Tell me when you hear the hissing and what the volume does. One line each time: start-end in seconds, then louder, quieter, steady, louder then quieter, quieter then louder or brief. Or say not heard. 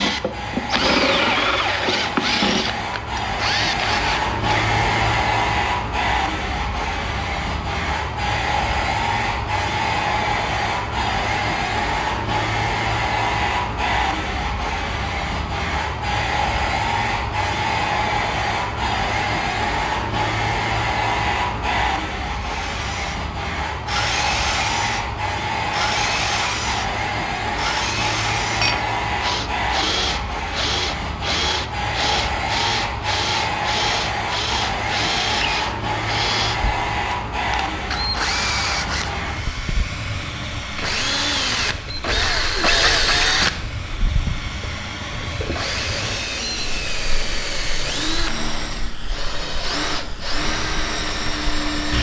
0.0-51.9 quieter.